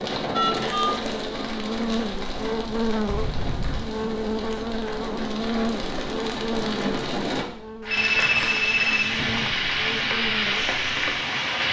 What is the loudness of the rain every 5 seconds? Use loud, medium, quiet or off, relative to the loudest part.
medium, loud, loud.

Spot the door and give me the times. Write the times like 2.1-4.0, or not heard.
3.0-3.9, 8.1-9.6.